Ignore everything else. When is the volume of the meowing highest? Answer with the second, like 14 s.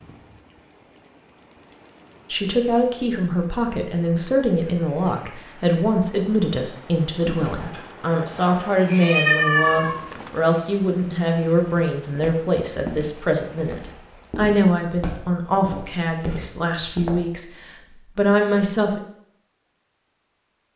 9 s.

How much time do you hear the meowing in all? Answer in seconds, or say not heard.
3 s.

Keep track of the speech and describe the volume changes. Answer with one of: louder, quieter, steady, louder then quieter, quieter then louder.
steady.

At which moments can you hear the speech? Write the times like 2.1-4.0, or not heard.
2.3-19.0.